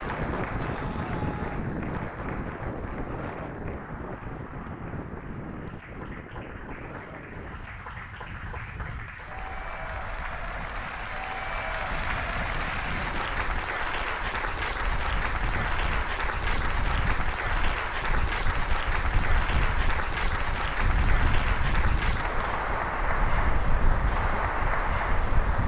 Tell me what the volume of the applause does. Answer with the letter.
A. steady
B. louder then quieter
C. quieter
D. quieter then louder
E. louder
E.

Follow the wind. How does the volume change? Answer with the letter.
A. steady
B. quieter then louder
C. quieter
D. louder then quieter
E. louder
B.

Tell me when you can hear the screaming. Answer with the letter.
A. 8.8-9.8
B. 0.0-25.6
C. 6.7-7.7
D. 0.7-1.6
D.